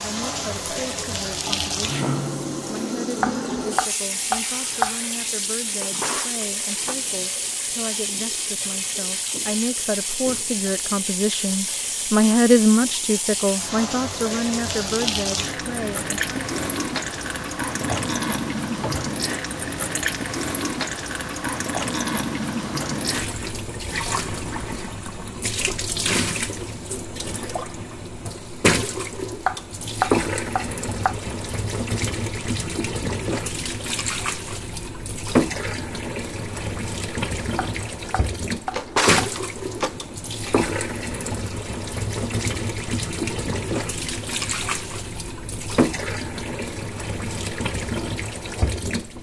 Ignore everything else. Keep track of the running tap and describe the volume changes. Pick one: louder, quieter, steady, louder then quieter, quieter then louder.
steady.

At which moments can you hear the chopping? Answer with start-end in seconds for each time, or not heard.
3.2-5.0, 29.4-31.1, 37.5-39.4.